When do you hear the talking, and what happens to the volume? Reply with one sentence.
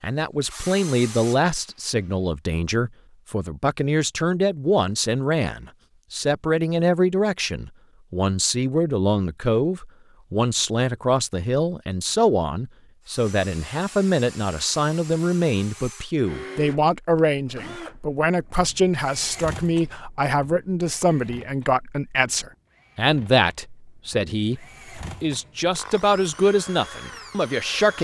You can hear the talking from 0.0 to 27.9 s, at a steady volume.